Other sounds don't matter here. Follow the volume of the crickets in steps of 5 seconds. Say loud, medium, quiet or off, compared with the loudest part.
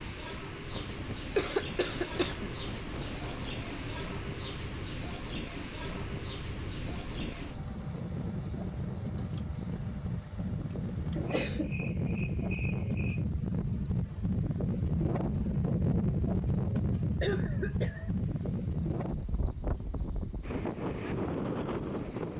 loud, loud, medium, medium, medium.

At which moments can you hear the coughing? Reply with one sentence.
You can hear the coughing from 1.4 to 2.5 s, from 11.2 to 11.7 s and from 16.8 to 18.1 s.